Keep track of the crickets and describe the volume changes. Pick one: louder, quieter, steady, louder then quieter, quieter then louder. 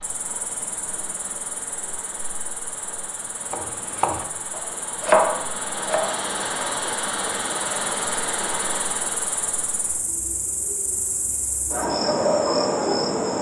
louder.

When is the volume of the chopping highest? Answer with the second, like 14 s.
5 s.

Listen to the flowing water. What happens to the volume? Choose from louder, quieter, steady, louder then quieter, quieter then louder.
louder.